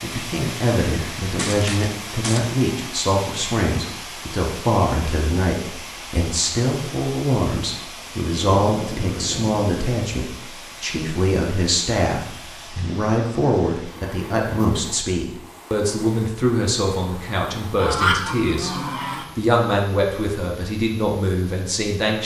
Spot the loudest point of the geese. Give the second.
18 s.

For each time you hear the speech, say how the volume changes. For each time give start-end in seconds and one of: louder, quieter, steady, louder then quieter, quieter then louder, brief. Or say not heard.
0.0-22.2 steady.